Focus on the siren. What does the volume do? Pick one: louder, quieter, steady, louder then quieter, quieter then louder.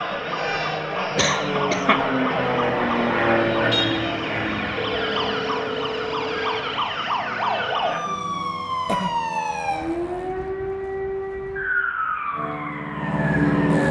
steady.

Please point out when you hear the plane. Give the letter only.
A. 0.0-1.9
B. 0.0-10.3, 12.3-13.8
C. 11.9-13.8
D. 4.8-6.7
B.